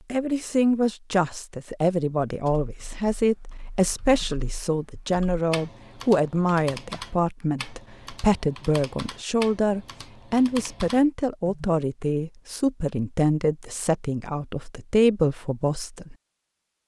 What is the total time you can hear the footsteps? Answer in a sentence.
The footsteps can't be heard in this clip.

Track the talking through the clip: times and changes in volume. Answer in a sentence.
The talking can be heard from 0.1 to 16.1 s, at a steady volume.